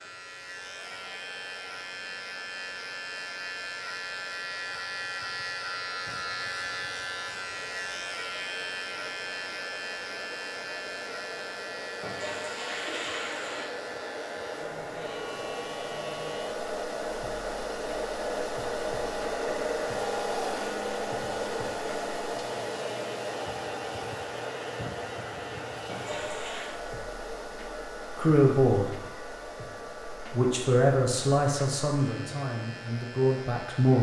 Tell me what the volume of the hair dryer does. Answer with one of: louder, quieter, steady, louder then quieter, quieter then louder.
louder then quieter.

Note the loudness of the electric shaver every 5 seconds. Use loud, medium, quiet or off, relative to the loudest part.
loud, loud, medium, medium, medium, medium, medium.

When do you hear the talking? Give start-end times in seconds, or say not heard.
28.1-28.9, 30.2-33.9.